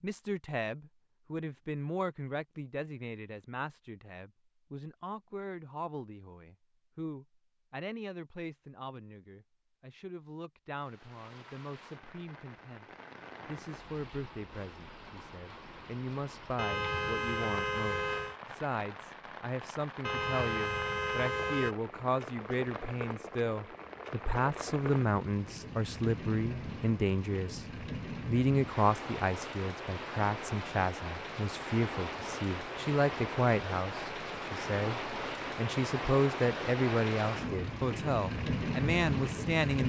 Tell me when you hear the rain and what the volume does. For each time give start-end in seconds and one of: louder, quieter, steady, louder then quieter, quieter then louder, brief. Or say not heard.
10.8-39.8 louder.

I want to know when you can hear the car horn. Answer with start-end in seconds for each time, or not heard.
16.6-18.4, 20.0-21.8.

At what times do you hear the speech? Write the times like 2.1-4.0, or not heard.
0.0-12.8, 13.4-39.8.